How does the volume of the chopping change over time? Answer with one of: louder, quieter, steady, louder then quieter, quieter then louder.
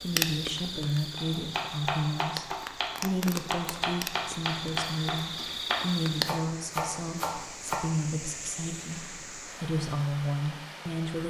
steady.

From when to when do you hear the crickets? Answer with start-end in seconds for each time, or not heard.
0.0-6.3.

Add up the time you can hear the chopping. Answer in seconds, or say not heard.
7 s.